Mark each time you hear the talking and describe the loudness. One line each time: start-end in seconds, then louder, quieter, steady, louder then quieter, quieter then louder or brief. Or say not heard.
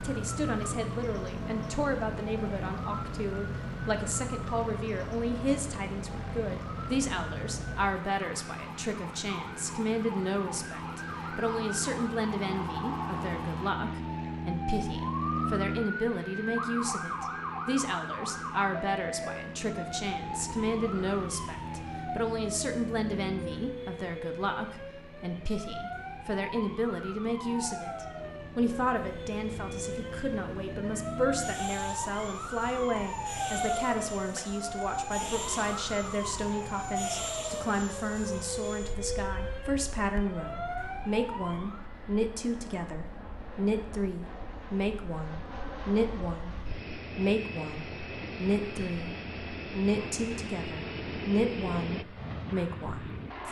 0.0-53.4 steady.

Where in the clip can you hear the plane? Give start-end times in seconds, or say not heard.
0.0-53.4.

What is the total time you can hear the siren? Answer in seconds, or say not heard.
42 s.